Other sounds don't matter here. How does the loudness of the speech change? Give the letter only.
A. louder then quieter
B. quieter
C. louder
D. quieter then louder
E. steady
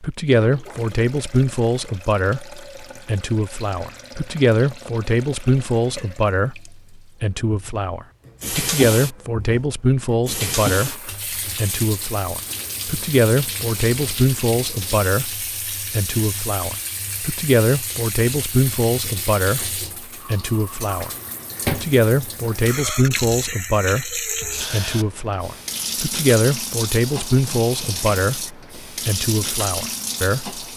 E.